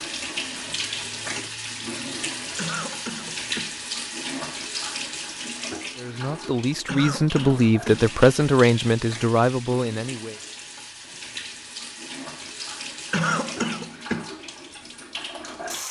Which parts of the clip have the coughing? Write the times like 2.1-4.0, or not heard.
2.5-3.8, 6.8-8.2, 13.1-14.3.